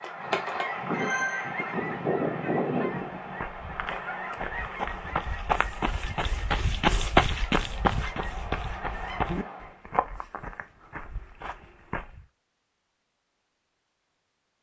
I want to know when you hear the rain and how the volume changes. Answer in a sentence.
The rain can't be heard in this clip.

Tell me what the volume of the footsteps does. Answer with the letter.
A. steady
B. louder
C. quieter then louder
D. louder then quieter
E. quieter
D.